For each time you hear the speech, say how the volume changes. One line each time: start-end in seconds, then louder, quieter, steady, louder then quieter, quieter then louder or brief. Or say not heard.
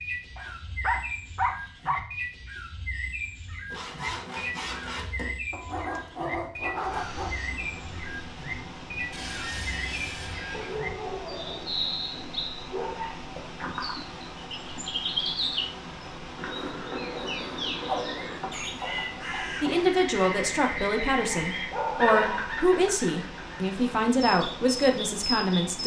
19.6-25.8 steady.